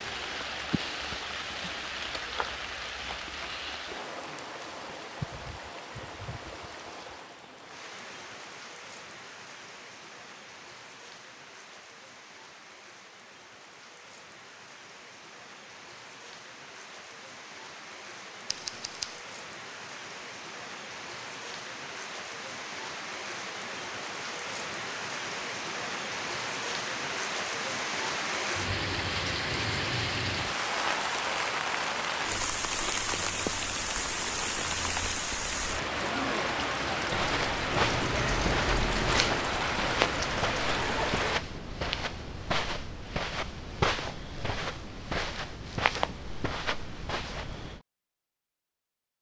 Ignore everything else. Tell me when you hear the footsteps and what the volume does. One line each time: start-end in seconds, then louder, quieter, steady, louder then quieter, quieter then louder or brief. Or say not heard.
37.1-47.8 steady.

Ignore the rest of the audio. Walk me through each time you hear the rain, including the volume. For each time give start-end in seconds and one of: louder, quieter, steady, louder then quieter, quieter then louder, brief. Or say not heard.
0.0-41.4 quieter then louder.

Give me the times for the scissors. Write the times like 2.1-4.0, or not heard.
2.0-3.6, 18.4-19.2, 37.7-39.4.